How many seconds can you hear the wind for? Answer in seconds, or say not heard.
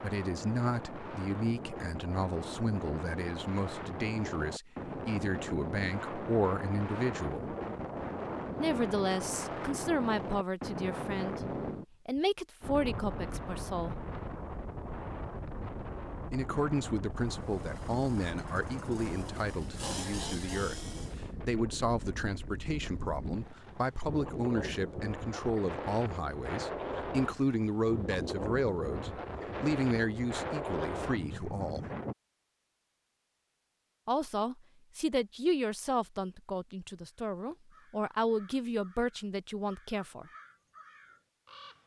32 s.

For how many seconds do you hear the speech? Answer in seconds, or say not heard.
35 s.